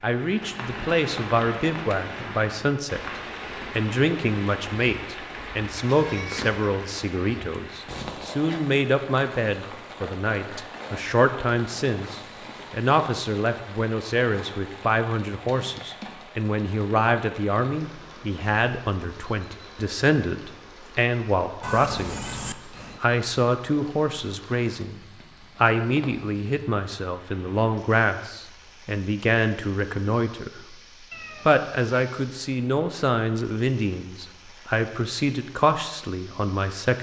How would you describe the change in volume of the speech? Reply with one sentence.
The volume of the speech stays about the same.